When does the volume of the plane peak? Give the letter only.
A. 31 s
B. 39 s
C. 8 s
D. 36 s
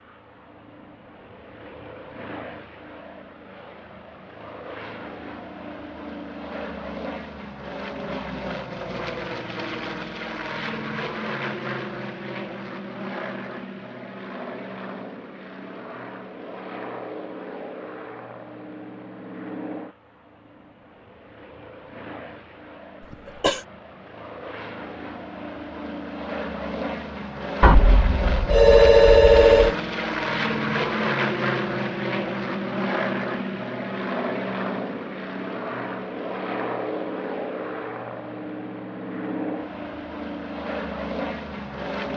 A.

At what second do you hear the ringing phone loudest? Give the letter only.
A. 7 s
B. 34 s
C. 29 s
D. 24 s
C.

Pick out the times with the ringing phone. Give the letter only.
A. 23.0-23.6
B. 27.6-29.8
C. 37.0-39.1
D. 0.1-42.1
B.